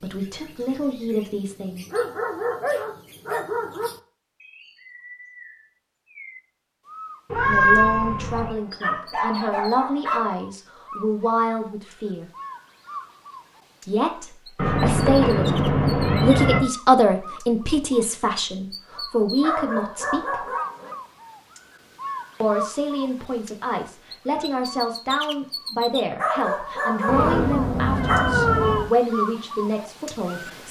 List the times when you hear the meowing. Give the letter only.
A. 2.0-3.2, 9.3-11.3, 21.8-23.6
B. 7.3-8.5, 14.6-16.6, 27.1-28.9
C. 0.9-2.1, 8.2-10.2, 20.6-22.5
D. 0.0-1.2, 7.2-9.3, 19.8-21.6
B.